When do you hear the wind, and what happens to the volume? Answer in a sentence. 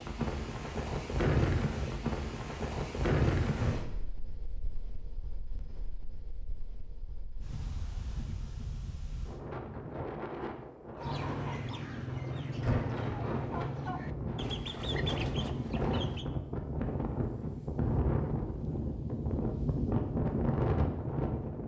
You can hear the wind from 0.0 to 21.6 s, getting quieter then louder.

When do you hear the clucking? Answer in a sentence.
You can hear the clucking from 10.9 to 16.2 s.